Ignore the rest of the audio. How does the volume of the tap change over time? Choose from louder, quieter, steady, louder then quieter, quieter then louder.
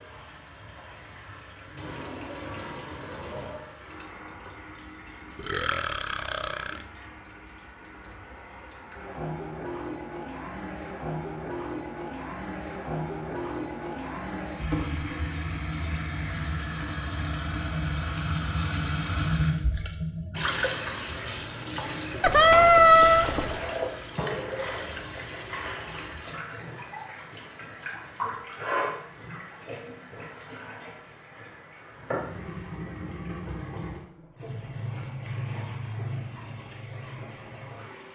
louder then quieter.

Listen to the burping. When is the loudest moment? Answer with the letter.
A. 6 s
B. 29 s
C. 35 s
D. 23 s
D.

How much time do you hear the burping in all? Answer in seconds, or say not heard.
3 s.